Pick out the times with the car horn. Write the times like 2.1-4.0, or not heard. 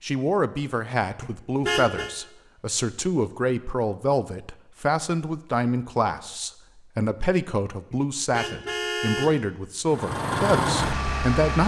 1.2-2.1, 7.9-9.4.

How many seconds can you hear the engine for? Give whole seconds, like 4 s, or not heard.
2 s.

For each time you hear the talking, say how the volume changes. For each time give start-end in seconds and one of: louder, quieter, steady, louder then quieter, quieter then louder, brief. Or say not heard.
0.0-11.6 steady.